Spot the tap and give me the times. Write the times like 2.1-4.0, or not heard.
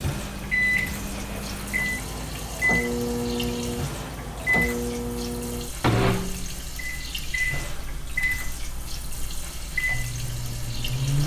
0.0-11.2.